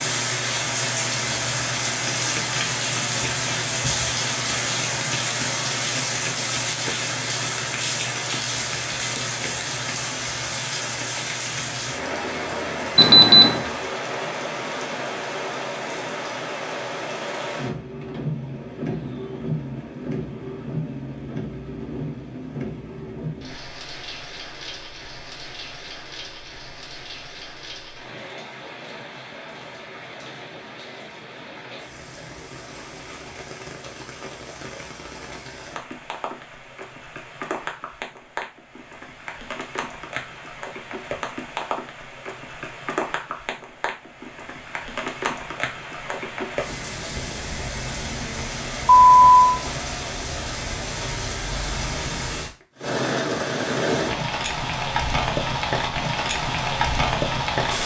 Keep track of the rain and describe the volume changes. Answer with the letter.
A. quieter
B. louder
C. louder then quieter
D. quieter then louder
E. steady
D.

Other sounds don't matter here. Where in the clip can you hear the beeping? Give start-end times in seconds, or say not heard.
12.9-13.6, 48.9-49.4.